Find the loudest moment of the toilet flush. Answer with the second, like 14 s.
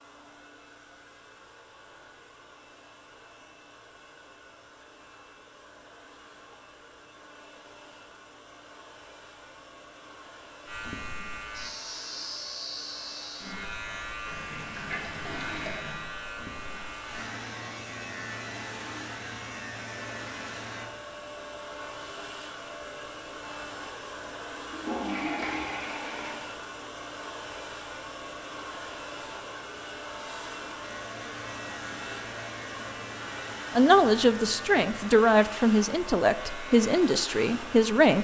25 s.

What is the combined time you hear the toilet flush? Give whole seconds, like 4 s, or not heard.
4 s.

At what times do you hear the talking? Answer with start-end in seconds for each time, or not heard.
33.8-38.1.